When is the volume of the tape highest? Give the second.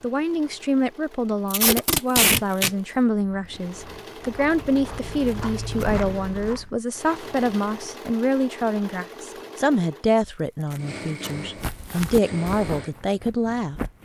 2 s.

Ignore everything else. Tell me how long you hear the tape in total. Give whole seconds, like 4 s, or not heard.
3 s.